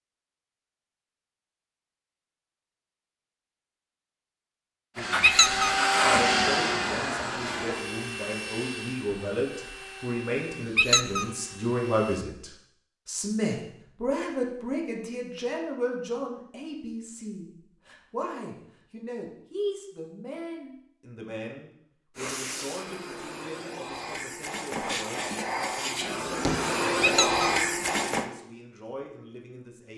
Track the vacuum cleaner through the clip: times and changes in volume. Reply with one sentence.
The vacuum cleaner can be heard from 5.0 to 12.2 s, getting quieter; and from 22.1 to 28.3 s, getting louder.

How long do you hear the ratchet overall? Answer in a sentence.
The ratchet can't be heard in this clip.